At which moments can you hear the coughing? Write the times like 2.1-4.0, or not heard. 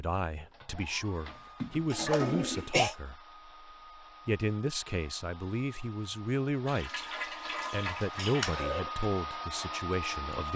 1.9-3.0, 8.2-9.1.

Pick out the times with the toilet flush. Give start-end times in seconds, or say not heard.
1.2-2.8, 6.7-8.7.